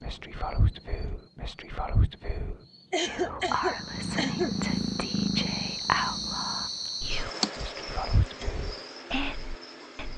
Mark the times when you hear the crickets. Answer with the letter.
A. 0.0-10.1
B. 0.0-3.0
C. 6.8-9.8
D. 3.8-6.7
A.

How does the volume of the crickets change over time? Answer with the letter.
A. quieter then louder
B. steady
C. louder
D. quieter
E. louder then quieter
E.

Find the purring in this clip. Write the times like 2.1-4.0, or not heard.
3.8-6.7.